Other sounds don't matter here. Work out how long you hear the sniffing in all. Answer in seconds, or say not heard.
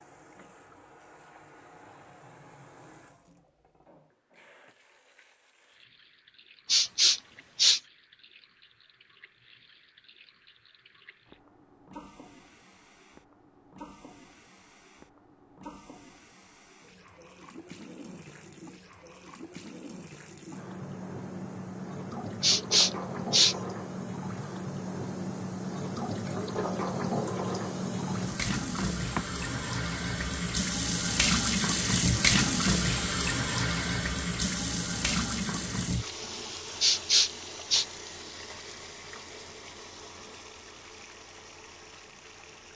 3 s.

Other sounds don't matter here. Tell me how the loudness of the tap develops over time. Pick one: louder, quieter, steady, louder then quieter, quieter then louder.
louder then quieter.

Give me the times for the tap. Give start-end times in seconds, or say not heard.
0.0-42.7.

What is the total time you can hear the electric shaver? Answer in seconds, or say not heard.
not heard.